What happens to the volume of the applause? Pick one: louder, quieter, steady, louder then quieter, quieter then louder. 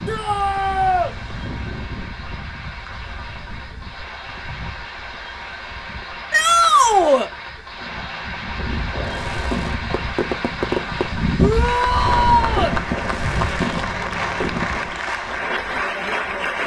louder.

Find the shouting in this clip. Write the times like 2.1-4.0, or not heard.
0.1-1.1, 6.3-7.3, 11.3-12.8.